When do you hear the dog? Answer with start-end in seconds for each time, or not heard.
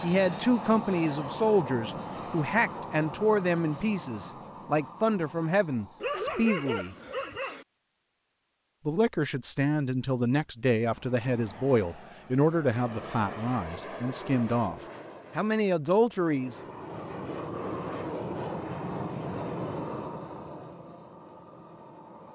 6.0-7.7.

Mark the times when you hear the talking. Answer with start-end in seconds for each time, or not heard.
0.0-7.0, 8.8-16.6.